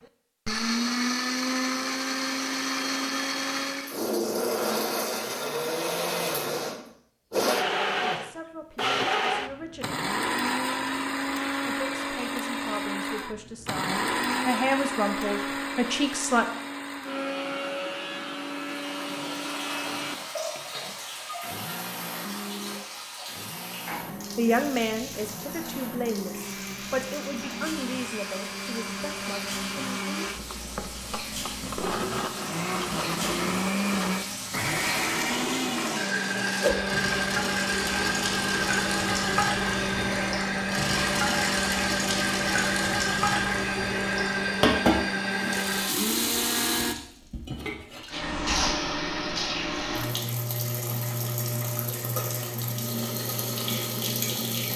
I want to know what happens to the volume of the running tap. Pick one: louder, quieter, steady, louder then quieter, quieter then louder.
louder.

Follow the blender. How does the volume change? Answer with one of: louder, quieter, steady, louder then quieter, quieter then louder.
quieter then louder.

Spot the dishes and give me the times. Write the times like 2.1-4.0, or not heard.
not heard.